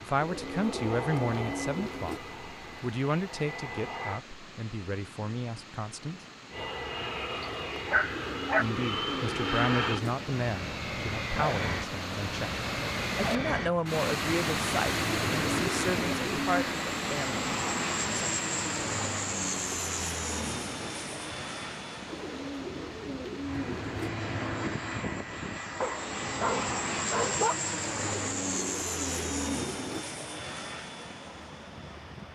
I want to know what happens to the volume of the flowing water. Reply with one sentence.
The volume of the flowing water goes up, then down.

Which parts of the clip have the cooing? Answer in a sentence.
You can hear the cooing from 0.1 to 2.2 s, from 8.1 to 10.2 s, from 15.3 to 16.6 s, from 22.1 to 24.1 s and from 28.0 to 30.1 s.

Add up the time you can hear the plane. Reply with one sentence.
You can hear the plane for 30 seconds altogether.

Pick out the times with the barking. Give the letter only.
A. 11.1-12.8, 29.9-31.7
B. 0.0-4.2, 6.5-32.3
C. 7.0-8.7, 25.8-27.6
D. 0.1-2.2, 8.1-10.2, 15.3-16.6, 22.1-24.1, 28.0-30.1
C.